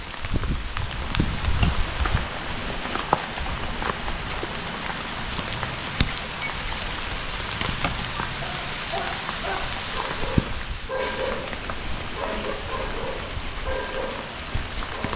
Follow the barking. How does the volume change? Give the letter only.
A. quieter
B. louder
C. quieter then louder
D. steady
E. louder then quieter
D.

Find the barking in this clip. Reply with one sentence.
You can hear the barking from 8.3 to 15.1 s.